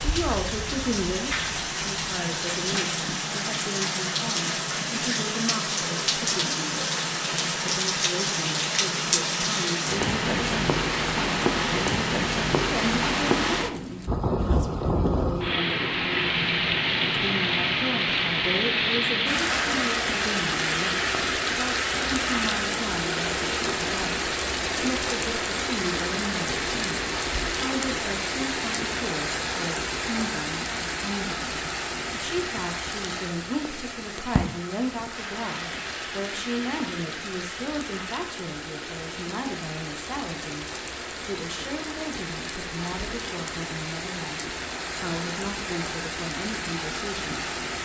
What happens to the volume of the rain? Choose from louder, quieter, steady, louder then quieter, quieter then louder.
quieter.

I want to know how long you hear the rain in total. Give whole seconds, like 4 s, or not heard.
48 s.